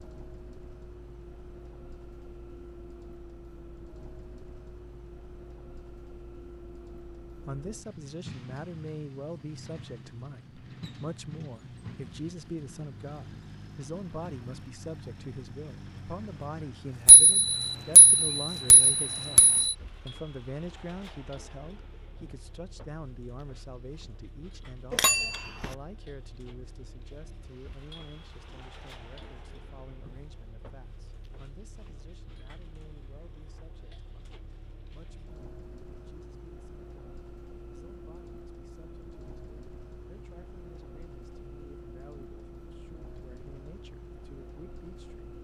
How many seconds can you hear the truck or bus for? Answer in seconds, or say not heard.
45 s.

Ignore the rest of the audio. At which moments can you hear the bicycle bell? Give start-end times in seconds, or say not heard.
17.1-19.8, 24.9-25.7.